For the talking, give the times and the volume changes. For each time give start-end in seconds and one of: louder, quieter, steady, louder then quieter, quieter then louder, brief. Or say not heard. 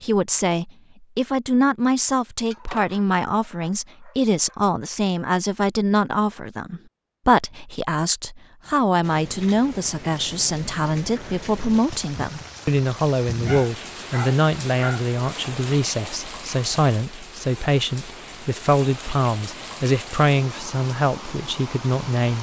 0.0-22.3 steady.